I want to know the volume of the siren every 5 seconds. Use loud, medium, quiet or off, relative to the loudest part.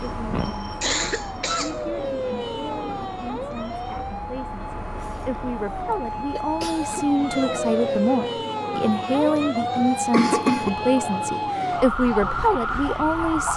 medium, loud, loud.